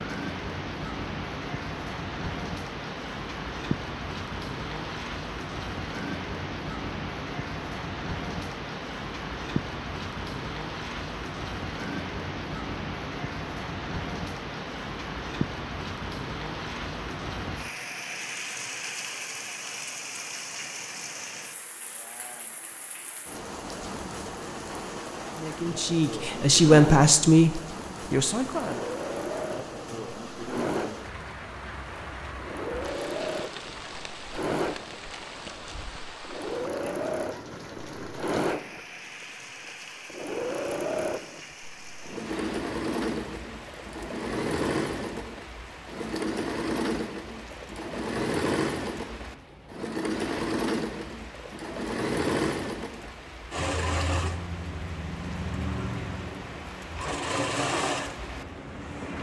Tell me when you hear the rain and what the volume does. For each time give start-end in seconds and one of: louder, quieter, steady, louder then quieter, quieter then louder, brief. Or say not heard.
0.0-59.1 quieter.